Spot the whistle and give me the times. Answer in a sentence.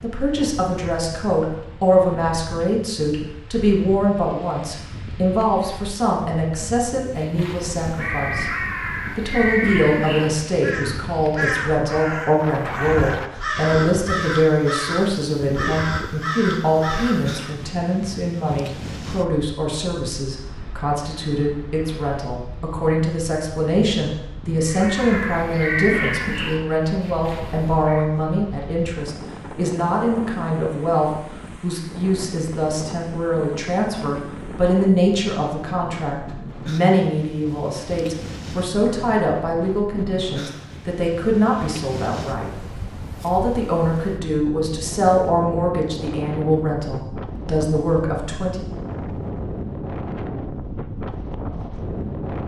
You can't hear the whistle here.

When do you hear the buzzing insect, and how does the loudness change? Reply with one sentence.
The buzzing insect can't be heard in this clip.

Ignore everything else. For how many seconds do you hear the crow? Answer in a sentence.
You can hear the crow for 14 seconds altogether.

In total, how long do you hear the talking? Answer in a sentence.
You can hear the talking for 48 seconds altogether.